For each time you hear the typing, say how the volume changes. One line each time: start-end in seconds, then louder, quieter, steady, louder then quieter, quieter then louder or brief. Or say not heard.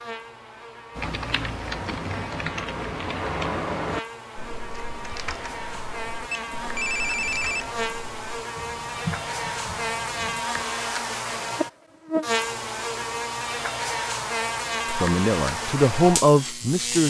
0.9-10.7 quieter then louder.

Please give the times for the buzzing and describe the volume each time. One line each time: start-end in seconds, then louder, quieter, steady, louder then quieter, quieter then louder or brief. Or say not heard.
0.0-17.0 louder.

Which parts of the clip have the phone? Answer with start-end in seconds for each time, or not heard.
6.3-7.7.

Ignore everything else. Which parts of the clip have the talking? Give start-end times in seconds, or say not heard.
14.8-17.0.